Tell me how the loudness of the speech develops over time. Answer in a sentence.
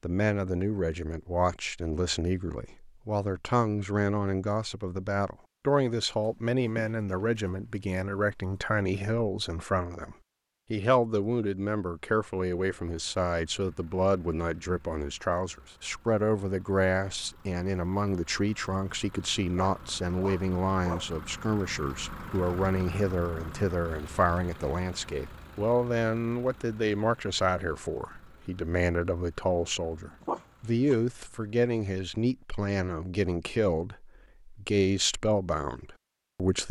The loudness of the speech stays about the same.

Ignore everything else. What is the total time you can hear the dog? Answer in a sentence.
The dog can be heard for 4 seconds in total.